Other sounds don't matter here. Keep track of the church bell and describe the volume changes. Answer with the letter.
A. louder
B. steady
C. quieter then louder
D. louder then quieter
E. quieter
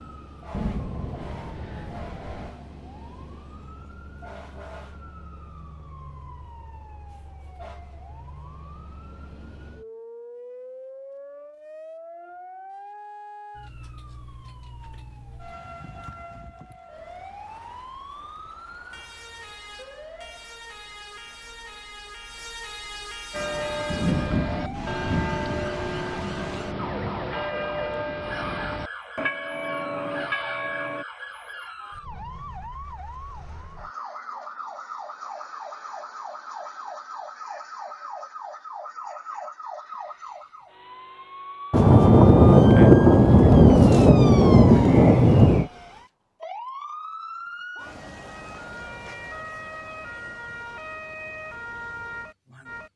B.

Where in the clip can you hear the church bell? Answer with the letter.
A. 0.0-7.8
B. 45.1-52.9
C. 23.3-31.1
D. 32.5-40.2
C.